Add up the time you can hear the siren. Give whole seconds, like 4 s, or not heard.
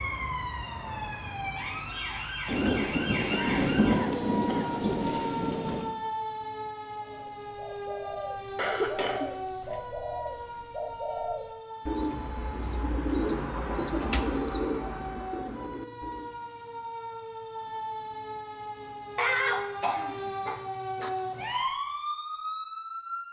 23 s.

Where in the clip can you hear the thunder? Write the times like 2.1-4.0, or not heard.
2.5-5.9.